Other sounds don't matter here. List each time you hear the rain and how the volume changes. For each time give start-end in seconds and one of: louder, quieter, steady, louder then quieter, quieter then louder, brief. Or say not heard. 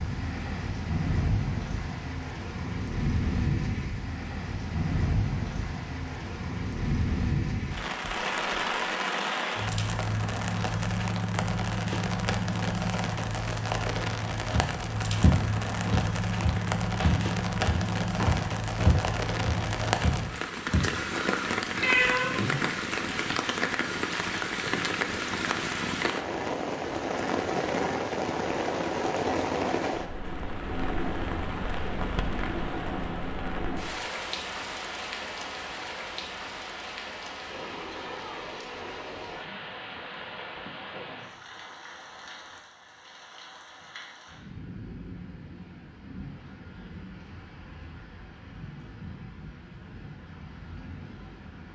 0.0-51.7 quieter.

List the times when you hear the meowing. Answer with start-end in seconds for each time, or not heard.
21.8-22.6.